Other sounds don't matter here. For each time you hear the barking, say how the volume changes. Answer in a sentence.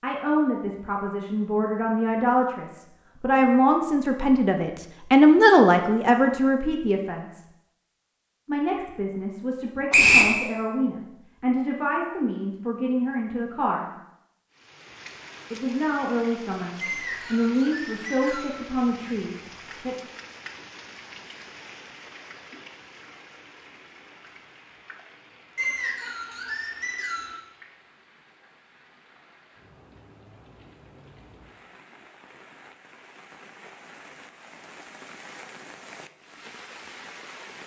You can't hear the barking here.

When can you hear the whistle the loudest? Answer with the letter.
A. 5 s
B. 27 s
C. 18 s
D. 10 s
D.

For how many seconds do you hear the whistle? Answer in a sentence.
You can hear the whistle for 4 seconds altogether.